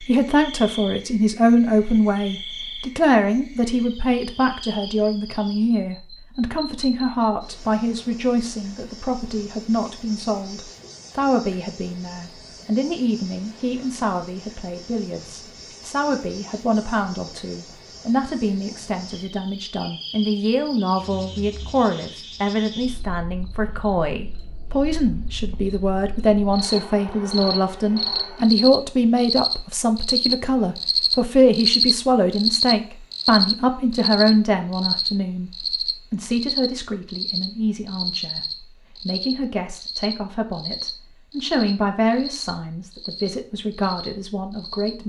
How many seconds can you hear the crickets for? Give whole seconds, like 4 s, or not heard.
45 s.